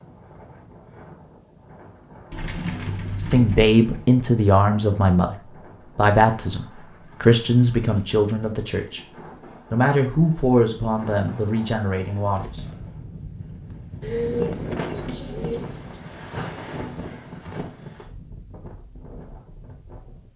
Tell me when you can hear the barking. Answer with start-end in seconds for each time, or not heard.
not heard.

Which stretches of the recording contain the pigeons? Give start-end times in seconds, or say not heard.
2.3-4.0, 14.0-16.0.